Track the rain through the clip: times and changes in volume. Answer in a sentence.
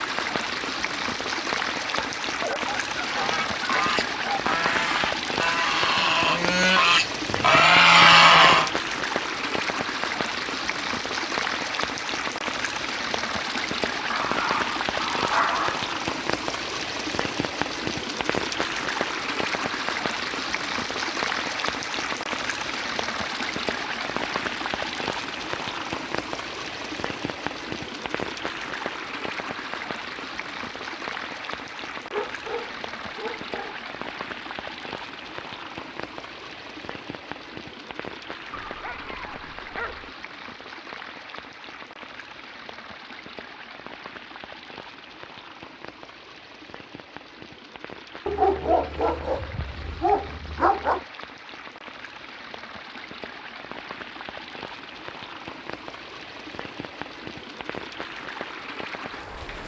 You can hear the rain from 0.0 to 59.6 s, getting quieter.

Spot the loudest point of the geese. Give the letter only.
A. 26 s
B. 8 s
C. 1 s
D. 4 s
B.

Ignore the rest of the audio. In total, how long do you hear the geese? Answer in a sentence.
You can hear the geese for 6 seconds altogether.